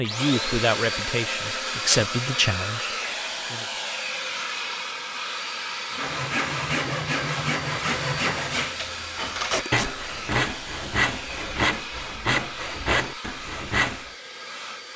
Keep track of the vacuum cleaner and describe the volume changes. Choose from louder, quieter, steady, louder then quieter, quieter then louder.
quieter.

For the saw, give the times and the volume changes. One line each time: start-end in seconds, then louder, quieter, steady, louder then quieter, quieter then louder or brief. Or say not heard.
6.0-14.1 steady.